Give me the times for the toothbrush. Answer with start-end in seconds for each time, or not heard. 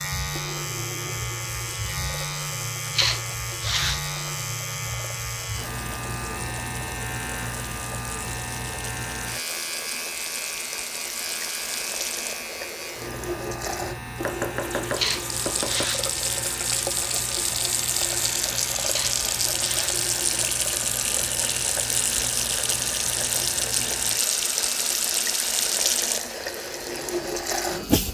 not heard.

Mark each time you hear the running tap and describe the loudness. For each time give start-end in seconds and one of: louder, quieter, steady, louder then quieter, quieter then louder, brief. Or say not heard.
0.1-28.0 louder.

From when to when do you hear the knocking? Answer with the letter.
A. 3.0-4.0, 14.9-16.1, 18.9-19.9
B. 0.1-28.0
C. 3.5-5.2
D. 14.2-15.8
D.